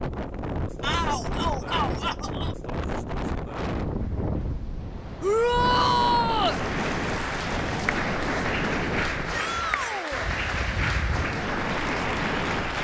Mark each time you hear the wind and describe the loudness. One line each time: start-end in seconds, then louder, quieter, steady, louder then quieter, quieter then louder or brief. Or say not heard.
0.0-12.7 steady.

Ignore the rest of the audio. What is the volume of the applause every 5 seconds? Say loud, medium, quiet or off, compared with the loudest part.
off, loud, loud.